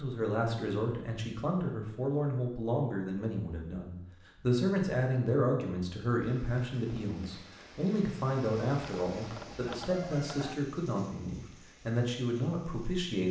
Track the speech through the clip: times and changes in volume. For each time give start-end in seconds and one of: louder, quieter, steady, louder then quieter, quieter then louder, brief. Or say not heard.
0.0-13.2 steady.